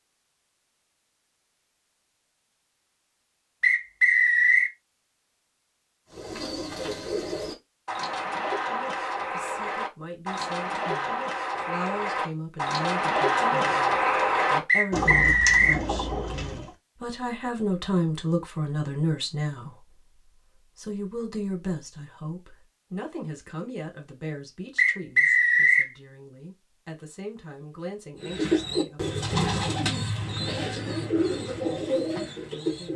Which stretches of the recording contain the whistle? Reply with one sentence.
You can hear the whistle from 3.6 to 4.7 s, from 14.7 to 15.8 s and from 24.8 to 25.9 s.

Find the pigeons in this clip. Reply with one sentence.
The pigeons can be heard from 6.1 to 16.8 s and from 28.2 to 32.9 s.